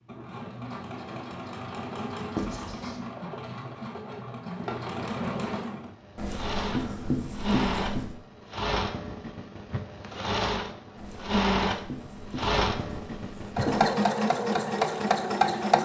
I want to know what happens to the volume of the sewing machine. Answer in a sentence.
The loudness of the sewing machine goes up.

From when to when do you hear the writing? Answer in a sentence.
You can hear the writing from 2.4 to 3.0 s, from 6.2 to 8.2 s and from 10.9 to 13.8 s.